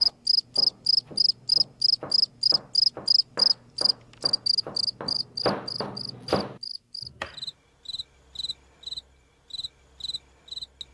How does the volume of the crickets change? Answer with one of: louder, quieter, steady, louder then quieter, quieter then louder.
quieter.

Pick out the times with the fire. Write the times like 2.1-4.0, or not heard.
not heard.